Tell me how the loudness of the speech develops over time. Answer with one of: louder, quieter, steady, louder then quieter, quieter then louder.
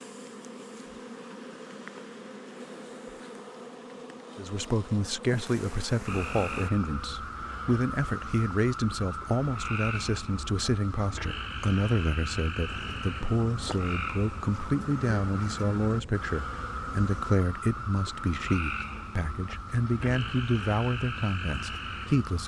steady.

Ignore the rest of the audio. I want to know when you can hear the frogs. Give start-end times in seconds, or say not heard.
6.0-22.4.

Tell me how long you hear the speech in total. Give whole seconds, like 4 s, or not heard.
18 s.